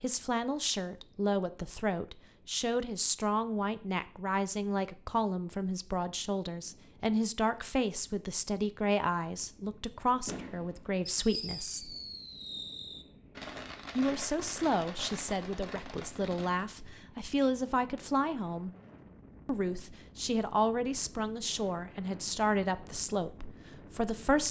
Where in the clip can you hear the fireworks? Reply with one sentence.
You can hear the fireworks from 10.2 to 16.6 s.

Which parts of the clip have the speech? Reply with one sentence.
The speech can be heard from 0.0 to 11.9 s, from 13.9 to 18.7 s and from 19.4 to 24.4 s.